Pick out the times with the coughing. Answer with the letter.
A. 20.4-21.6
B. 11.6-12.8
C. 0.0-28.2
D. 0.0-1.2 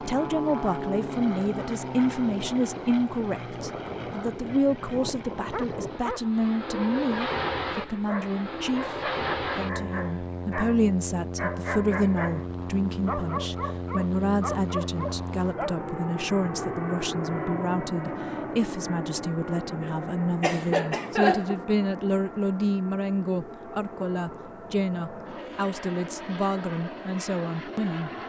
A.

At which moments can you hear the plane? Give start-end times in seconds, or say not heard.
0.0-28.2.